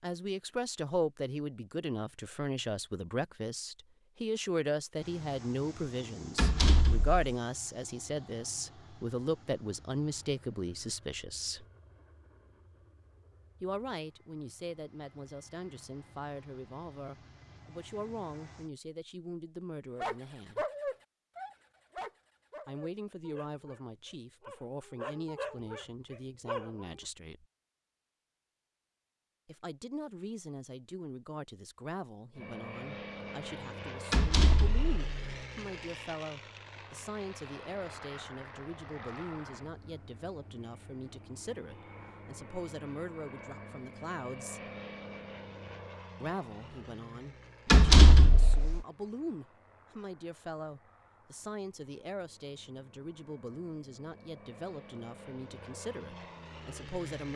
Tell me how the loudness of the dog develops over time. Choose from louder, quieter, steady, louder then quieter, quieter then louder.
quieter then louder.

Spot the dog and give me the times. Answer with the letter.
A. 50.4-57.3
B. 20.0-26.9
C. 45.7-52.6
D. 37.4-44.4
B.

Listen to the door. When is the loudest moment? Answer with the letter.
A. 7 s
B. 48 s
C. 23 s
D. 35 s
B.